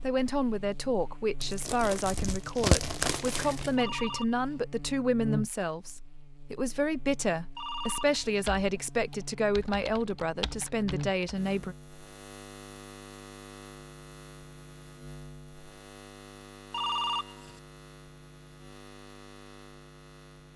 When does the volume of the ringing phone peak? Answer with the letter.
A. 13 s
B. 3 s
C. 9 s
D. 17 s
D.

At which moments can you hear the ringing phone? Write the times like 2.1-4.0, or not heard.
3.8-4.7, 7.5-8.2, 16.7-17.6.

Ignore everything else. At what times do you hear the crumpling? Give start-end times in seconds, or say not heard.
1.4-3.9.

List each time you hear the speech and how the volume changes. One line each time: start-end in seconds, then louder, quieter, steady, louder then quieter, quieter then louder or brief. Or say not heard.
0.0-11.8 steady.